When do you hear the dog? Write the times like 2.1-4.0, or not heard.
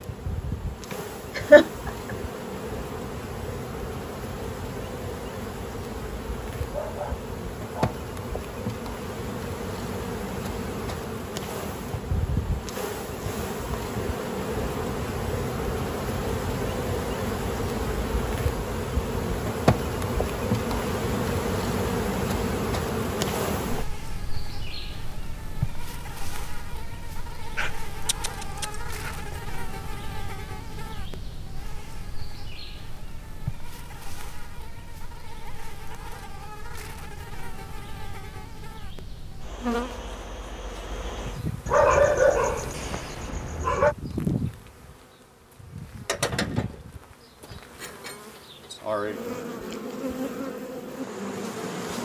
6.7-8.0, 27.6-29.4, 41.6-44.0.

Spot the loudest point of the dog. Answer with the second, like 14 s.
42 s.